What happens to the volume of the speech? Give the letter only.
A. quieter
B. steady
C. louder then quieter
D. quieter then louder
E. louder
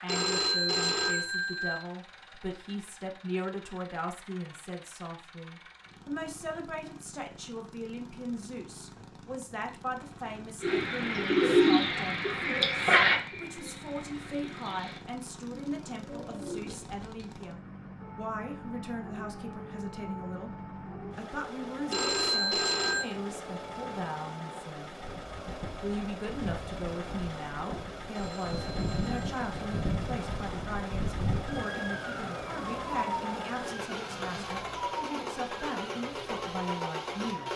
B.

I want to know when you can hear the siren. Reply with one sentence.
You can hear the siren from 17.9 to 37.5 s.